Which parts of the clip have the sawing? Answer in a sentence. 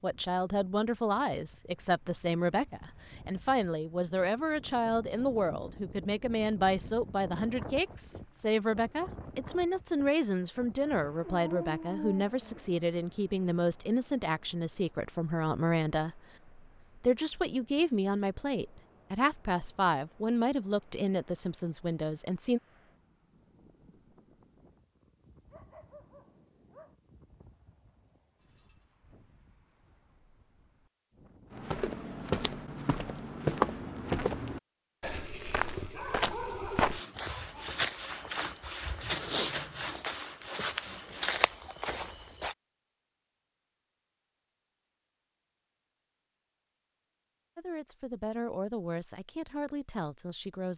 The sawing can be heard from 36.9 to 41.3 s.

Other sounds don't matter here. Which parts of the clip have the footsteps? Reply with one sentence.
The footsteps can be heard from 31.5 to 42.5 s.